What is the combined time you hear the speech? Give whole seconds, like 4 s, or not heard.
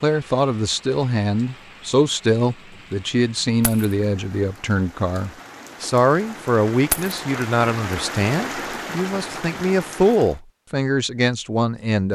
12 s.